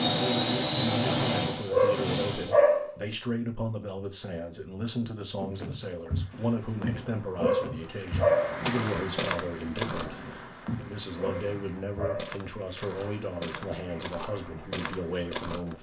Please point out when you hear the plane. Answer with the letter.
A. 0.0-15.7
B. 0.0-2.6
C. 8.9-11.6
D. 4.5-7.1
B.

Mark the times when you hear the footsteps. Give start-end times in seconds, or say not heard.
5.3-15.7.